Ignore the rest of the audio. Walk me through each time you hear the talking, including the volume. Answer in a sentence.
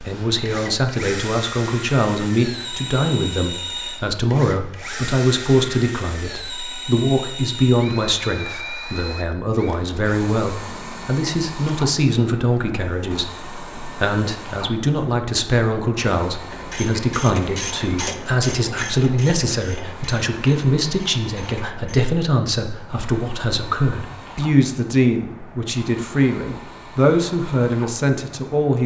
The talking can be heard from 0.0 to 28.8 s, at a steady volume.